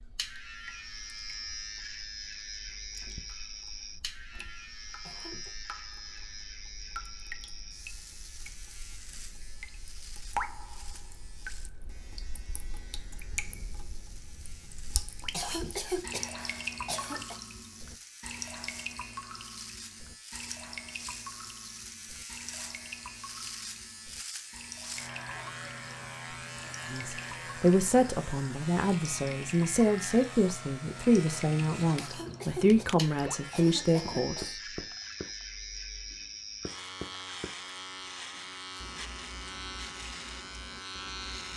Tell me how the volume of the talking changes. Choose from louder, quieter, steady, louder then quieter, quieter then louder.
steady.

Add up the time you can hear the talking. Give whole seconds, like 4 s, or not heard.
8 s.